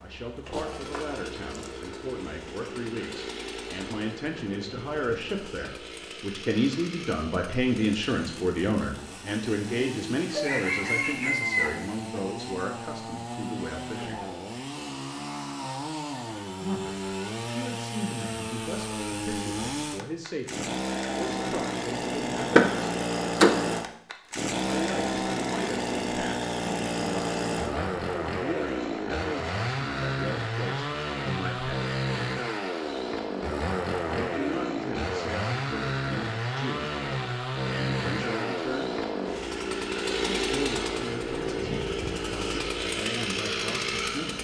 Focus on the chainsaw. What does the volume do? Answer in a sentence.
The volume of the chainsaw goes up.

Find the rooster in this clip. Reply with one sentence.
You can hear the rooster from 10.3 to 12.2 s.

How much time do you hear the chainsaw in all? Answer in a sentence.
The chainsaw can be heard for 44 seconds in total.